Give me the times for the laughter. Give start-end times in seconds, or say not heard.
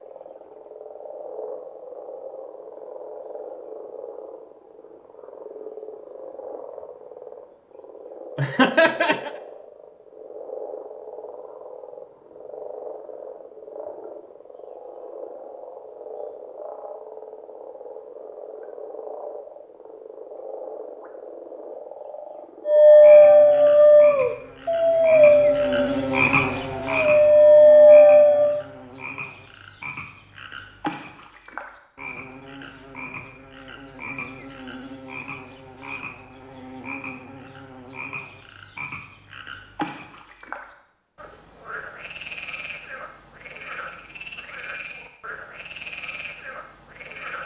8.3-9.3.